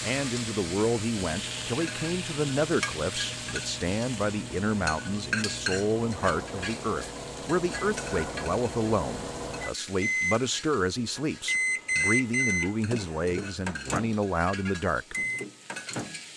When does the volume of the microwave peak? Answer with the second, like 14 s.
12 s.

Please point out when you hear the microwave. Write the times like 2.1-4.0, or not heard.
0.0-16.3.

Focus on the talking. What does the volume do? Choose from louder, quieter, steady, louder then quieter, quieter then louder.
steady.